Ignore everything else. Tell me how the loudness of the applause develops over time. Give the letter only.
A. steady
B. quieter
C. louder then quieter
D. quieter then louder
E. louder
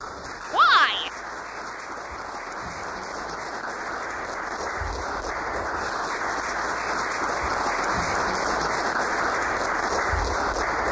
E.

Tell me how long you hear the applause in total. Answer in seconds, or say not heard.
11 s.